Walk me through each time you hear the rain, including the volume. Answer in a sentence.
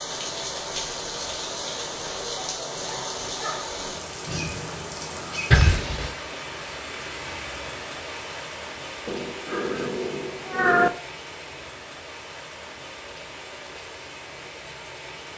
You can hear the rain from 0.0 to 15.3 s, getting quieter.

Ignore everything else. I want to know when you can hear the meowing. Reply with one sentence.
The meowing can be heard from 5.5 to 6.1 s and from 9.1 to 10.9 s.